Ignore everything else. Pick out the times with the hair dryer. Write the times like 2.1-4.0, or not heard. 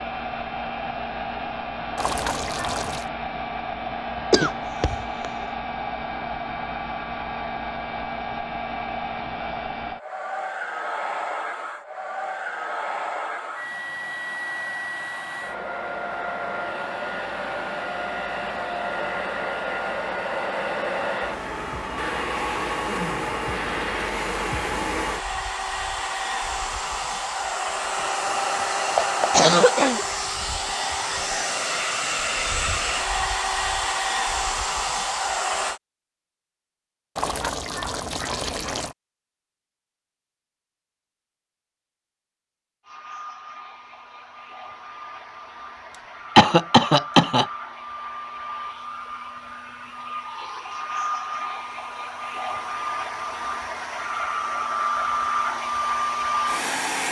0.0-35.8, 42.8-57.0.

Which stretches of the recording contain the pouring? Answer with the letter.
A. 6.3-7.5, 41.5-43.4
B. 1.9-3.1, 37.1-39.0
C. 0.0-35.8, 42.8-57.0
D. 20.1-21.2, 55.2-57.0
B.